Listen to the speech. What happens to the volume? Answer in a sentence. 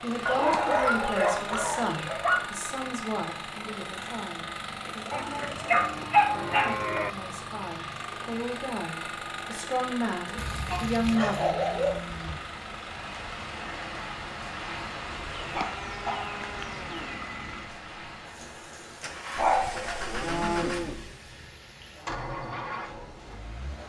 The volume of the speech goes down, then up.